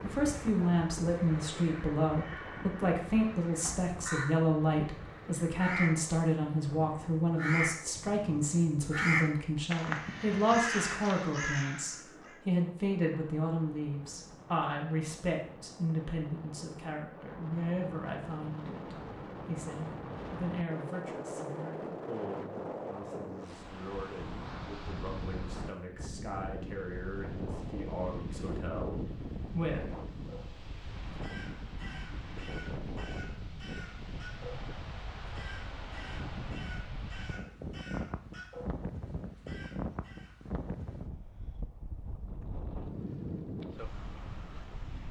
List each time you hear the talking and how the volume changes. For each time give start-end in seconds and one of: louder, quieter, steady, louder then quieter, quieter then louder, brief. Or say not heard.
0.0-29.9 quieter.